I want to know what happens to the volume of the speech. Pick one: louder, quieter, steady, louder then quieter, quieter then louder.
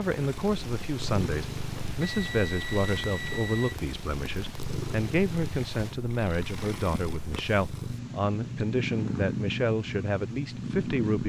steady.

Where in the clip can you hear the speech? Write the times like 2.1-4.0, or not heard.
0.0-11.2.